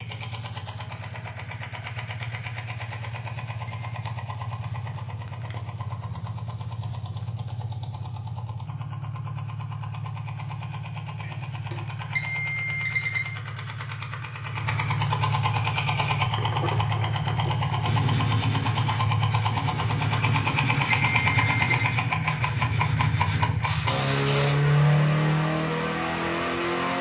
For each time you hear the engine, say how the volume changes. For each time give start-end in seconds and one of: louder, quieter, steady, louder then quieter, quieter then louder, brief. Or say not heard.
0.0-26.9 louder.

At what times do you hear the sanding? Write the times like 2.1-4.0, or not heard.
17.8-24.6.